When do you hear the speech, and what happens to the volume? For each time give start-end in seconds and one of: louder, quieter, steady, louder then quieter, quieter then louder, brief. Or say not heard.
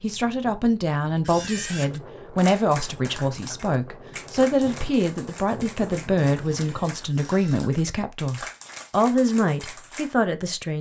0.0-10.7 steady.